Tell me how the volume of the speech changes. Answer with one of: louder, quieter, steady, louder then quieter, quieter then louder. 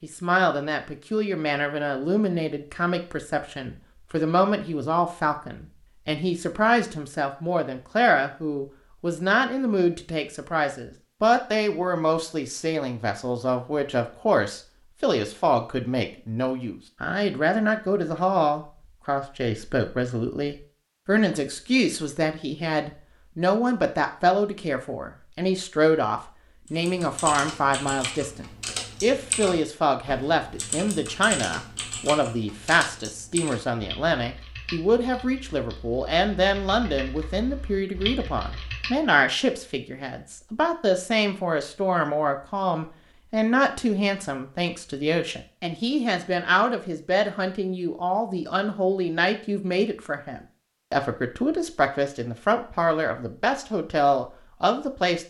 steady.